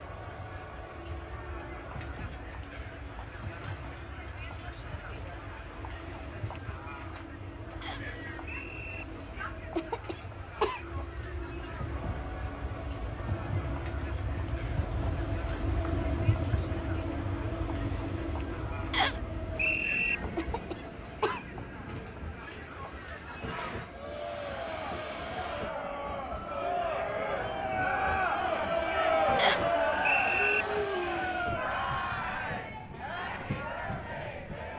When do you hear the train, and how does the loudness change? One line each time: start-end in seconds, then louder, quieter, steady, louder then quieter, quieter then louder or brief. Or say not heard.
0.0-34.7 louder then quieter.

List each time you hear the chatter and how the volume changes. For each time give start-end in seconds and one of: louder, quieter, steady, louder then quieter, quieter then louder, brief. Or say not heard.
0.0-34.7 louder.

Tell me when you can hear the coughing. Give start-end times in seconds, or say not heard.
9.8-11.1, 20.4-21.6.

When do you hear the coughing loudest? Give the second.
11 s.